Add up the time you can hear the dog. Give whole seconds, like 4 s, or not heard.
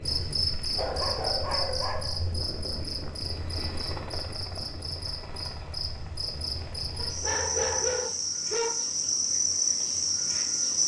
3 s.